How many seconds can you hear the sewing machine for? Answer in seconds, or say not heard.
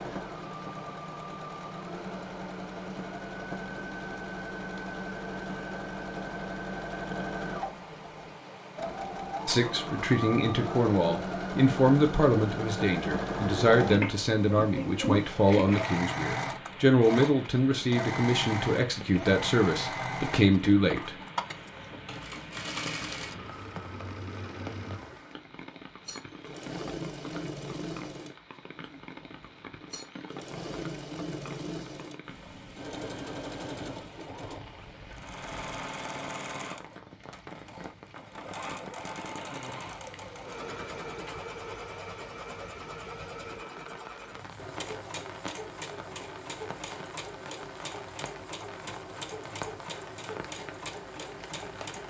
52 s.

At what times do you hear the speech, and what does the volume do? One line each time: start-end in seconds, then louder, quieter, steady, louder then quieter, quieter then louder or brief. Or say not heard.
9.4-21.1 steady.